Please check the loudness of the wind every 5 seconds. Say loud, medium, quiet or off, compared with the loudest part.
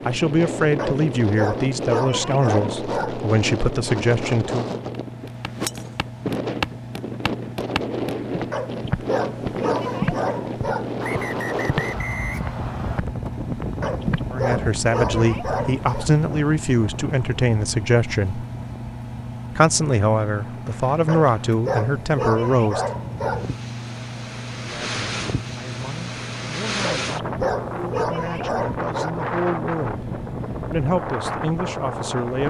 loud, loud, loud, medium, medium, loud, loud.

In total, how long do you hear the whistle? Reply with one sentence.
The whistle can be heard for 2 seconds in total.